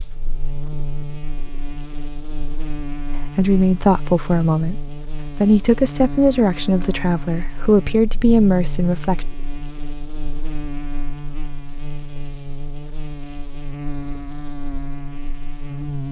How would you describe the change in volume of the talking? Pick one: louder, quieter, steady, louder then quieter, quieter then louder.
steady.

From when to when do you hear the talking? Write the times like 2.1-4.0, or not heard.
3.2-9.2.